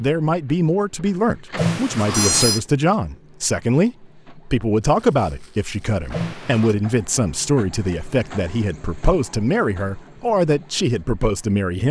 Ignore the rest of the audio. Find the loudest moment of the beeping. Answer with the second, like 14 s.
2 s.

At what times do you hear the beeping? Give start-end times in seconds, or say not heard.
1.6-2.6, 6.1-6.8.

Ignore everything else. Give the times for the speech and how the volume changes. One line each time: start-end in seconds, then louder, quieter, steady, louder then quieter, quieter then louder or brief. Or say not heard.
0.0-11.8 steady.